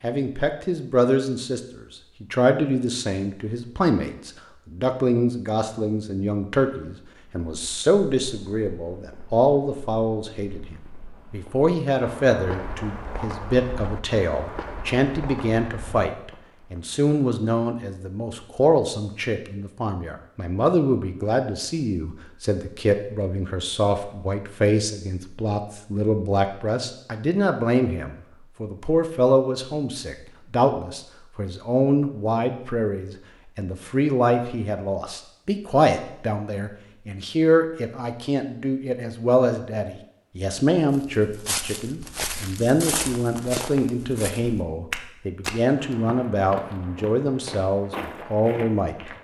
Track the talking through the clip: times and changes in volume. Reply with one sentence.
You can hear the talking from 0.0 to 49.1 s, at a steady volume.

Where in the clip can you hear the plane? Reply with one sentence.
The plane can't be heard in this clip.